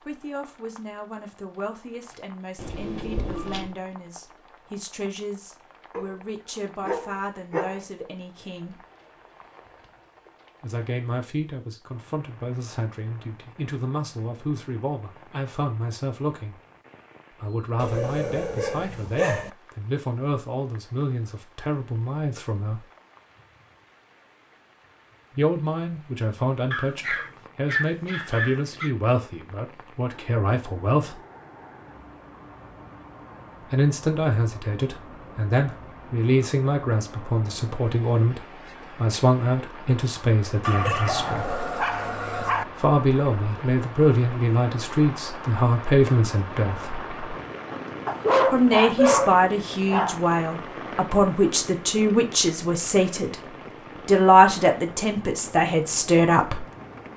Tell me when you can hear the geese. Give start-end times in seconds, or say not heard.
not heard.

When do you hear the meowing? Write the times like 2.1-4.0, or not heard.
2.5-3.7.